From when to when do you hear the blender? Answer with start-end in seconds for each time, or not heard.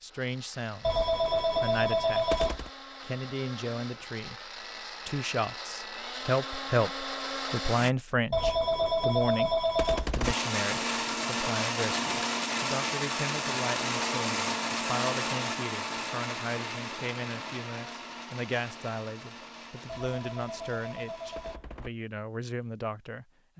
0.0-8.0, 10.2-21.6.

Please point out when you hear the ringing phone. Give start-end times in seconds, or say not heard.
0.8-2.7, 8.3-10.3, 19.9-21.9.